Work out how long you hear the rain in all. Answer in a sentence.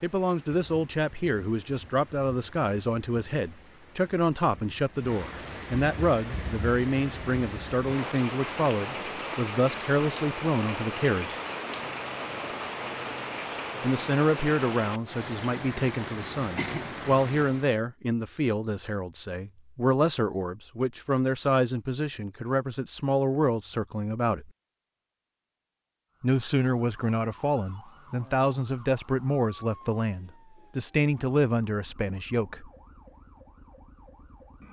The rain can be heard for 18 seconds in total.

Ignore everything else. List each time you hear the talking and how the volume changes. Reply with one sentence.
The talking can be heard from 0.0 to 11.4 s, at a steady volume; from 13.8 to 24.5 s, at a steady volume; and from 26.2 to 32.7 s, at a steady volume.